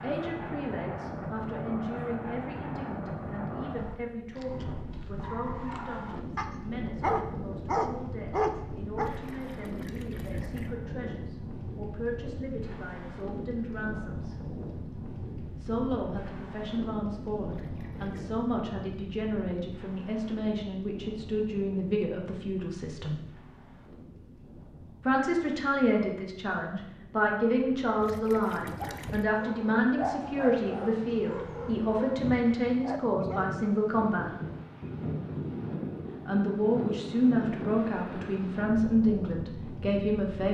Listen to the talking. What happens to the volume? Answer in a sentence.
The volume of the talking goes up.